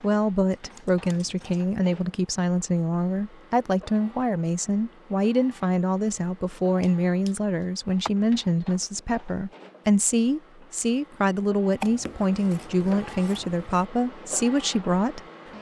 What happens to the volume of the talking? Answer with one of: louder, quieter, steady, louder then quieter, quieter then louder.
steady.